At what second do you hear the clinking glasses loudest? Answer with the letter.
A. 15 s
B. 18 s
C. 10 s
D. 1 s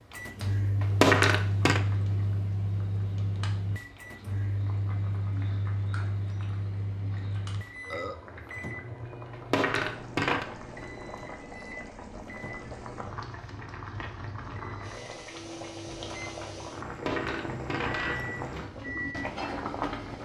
D.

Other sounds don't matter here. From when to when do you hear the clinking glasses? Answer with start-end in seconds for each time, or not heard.
0.8-1.8, 9.3-10.4, 16.9-18.4.